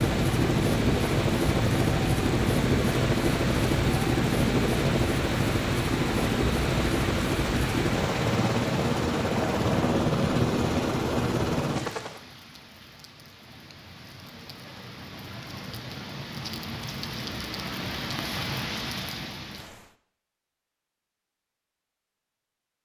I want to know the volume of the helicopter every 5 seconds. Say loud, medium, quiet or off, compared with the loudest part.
loud, loud, loud, off, off.